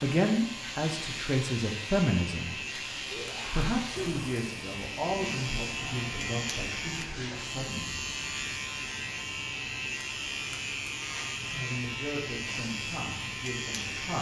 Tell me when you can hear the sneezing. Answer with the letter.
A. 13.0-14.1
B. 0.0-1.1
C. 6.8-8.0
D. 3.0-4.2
D.